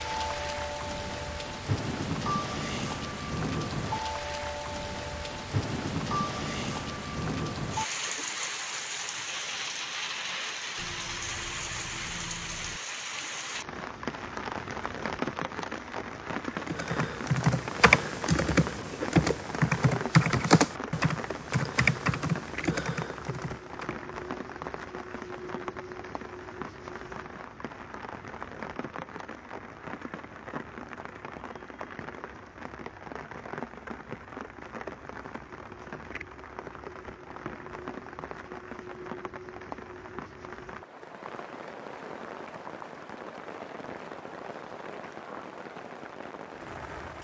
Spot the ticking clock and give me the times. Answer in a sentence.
The ticking clock can't be heard in this clip.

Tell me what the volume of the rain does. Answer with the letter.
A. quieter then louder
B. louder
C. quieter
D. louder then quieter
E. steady
C.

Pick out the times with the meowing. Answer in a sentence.
You can hear the meowing from 10.8 to 12.8 s.